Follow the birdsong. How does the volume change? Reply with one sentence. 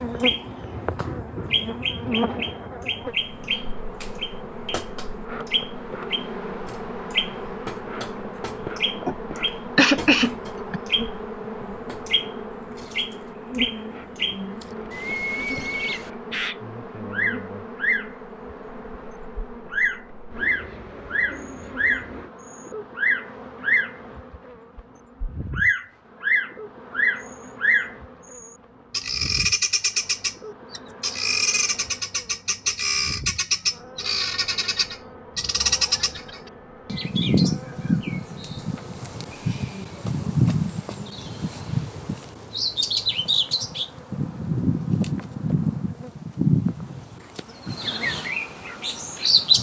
The loudness of the birdsong goes up.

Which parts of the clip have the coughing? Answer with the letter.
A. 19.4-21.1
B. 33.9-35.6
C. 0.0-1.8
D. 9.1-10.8
D.